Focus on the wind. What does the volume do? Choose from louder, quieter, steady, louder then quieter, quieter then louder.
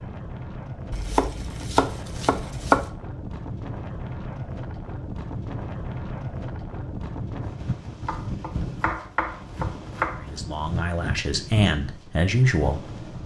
steady.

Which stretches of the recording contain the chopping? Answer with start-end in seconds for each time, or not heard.
0.9-2.9, 8.1-10.3.